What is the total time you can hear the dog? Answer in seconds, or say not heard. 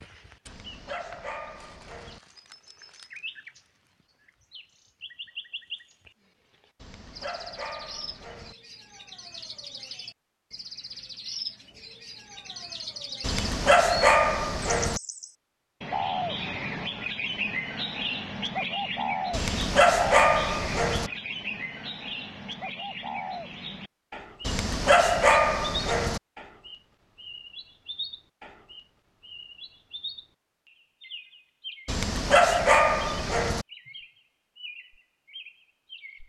11 s.